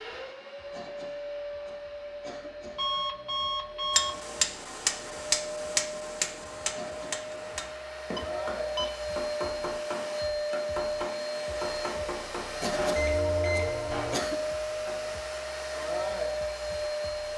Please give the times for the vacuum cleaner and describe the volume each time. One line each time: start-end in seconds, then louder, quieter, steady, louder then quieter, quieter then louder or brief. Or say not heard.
0.0-17.3 louder.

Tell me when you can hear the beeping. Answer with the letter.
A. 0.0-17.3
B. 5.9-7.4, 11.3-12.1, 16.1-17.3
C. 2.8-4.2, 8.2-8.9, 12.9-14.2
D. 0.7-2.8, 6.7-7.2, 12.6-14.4
C.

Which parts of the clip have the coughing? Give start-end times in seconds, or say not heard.
0.7-2.8, 6.7-7.2, 12.6-14.4.